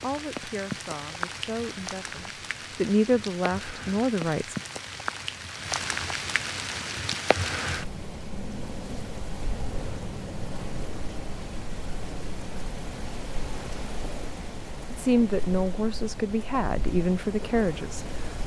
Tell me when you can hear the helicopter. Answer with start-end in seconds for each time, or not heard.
not heard.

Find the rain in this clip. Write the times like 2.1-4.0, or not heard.
0.0-18.4.